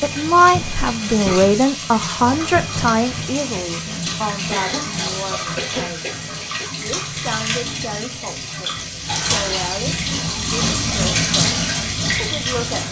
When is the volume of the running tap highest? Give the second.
11 s.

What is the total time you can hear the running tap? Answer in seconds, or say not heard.
13 s.